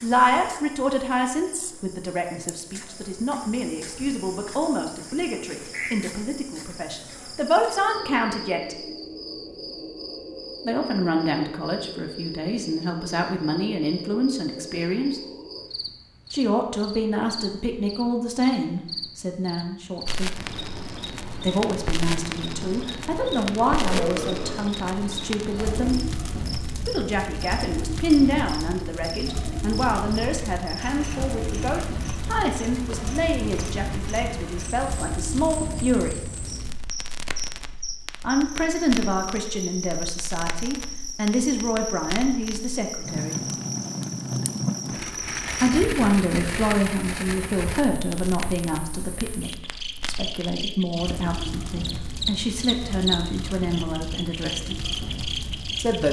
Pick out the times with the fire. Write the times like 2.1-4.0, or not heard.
20.1-56.0.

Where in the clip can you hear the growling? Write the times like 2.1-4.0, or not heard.
23.7-24.6.